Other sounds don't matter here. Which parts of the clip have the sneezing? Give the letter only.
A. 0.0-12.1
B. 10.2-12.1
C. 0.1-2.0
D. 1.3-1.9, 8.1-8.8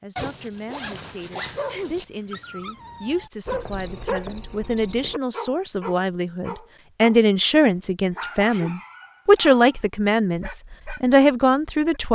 D.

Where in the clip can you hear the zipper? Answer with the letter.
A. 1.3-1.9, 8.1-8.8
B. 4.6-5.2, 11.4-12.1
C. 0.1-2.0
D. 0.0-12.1
C.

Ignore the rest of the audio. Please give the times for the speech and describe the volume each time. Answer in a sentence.
The speech can be heard from 0.0 to 12.1 s, getting louder.